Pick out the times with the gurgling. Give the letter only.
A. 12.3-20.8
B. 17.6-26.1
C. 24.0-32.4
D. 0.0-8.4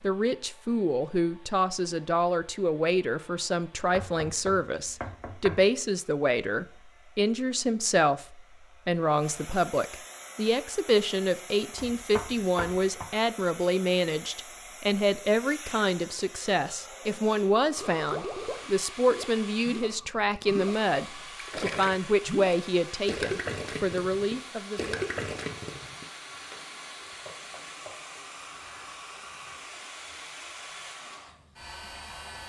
B.